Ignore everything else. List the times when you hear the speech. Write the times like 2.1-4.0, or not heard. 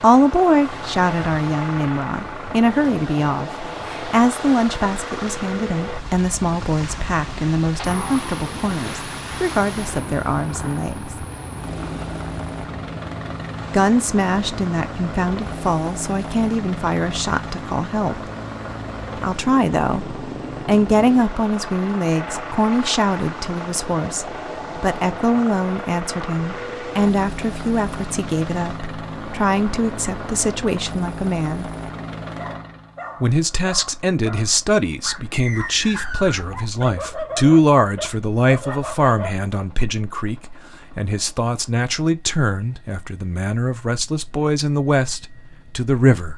0.0-11.2, 13.7-18.1, 19.2-31.7, 33.2-46.3.